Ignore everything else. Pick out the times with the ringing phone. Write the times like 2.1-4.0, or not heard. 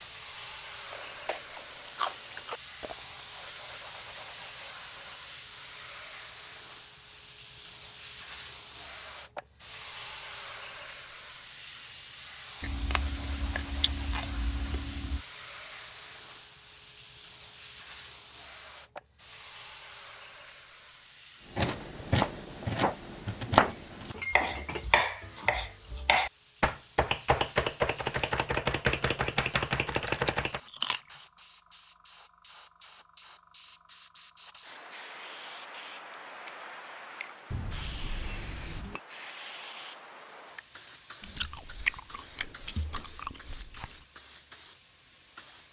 not heard.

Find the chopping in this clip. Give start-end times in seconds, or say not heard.
21.5-30.6.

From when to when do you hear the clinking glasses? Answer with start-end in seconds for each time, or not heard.
2.8-3.3, 23.5-24.9, 37.5-39.0.